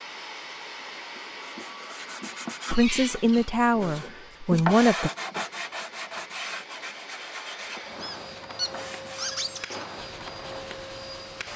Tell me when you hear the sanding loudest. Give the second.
5 s.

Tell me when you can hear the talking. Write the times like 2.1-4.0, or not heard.
2.7-5.1.